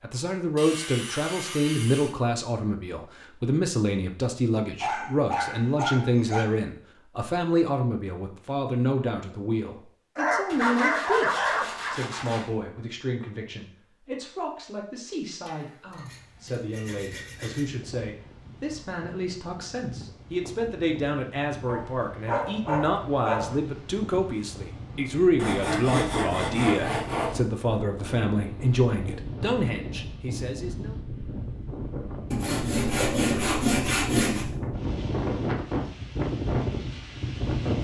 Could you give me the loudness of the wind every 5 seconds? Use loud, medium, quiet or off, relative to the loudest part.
off, off, off, quiet, quiet, medium, medium, loud.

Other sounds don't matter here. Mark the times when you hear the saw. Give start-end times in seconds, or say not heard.
0.6-2.1, 10.4-12.5, 15.4-17.7, 25.4-27.4, 32.3-34.5.